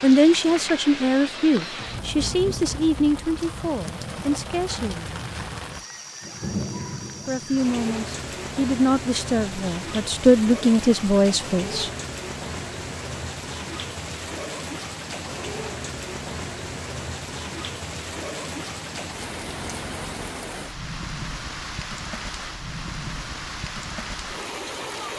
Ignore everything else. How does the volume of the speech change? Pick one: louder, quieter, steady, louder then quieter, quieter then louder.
quieter then louder.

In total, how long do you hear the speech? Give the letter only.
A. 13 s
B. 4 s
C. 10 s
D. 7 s
C.